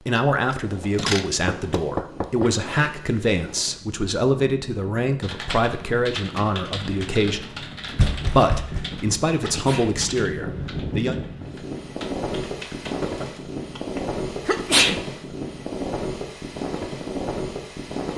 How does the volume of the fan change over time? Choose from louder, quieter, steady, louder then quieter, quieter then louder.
louder.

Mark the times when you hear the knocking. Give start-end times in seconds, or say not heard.
0.5-2.5, 8.0-8.8, 13.0-13.5.